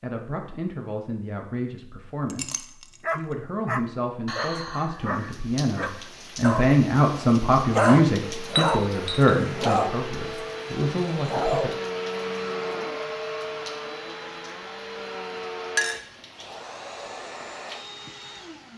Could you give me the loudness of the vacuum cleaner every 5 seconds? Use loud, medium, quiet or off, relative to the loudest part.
off, loud, loud, medium.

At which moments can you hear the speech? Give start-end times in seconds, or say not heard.
0.0-11.7.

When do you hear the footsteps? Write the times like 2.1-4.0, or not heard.
not heard.